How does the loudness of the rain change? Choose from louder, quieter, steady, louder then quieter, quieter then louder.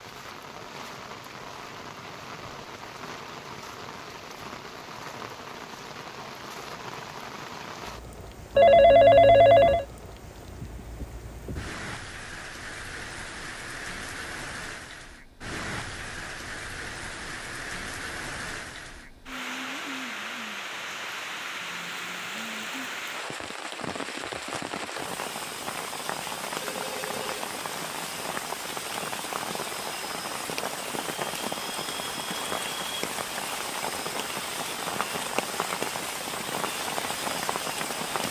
louder.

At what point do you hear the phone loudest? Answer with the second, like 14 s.
9 s.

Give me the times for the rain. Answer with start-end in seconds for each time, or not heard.
0.0-38.2.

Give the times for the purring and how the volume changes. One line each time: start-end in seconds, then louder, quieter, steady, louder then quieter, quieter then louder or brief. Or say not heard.
not heard.